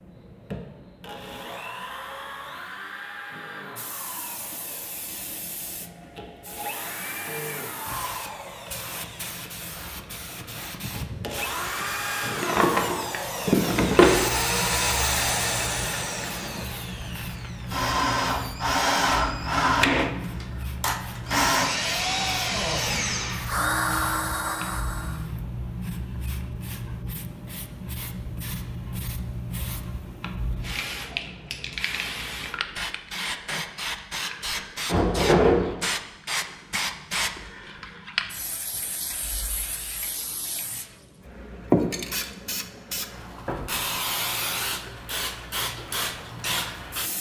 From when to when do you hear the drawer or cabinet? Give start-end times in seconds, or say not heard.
12.4-14.2, 34.9-35.8.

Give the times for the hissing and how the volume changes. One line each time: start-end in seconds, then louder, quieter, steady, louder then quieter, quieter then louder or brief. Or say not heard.
3.8-47.1 louder.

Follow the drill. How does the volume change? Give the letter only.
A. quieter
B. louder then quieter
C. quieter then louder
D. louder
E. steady
D.